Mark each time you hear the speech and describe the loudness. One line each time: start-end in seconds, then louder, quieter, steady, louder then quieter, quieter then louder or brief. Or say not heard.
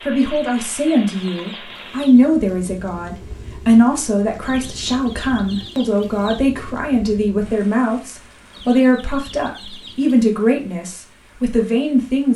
0.1-12.3 steady.